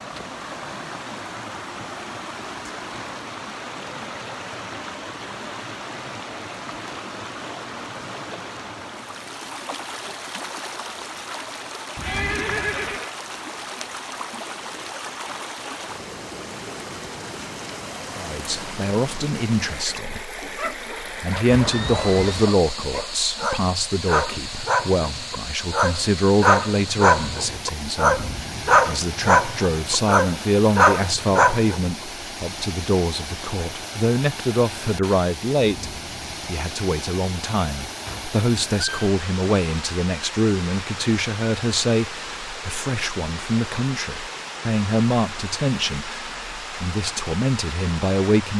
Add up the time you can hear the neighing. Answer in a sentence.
The neighing can be heard for 3 seconds in total.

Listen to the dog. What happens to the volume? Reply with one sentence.
The volume of the dog goes up.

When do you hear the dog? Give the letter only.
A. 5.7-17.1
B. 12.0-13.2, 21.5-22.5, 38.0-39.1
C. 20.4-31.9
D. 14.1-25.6
C.